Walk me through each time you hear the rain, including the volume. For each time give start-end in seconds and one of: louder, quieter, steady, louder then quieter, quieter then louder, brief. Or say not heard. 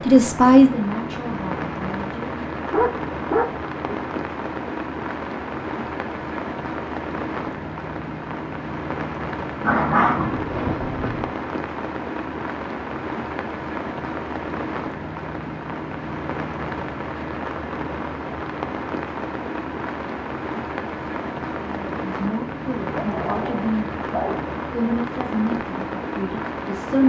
0.0-27.0 steady.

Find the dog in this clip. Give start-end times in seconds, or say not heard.
2.7-4.0, 9.6-11.2, 22.9-24.4.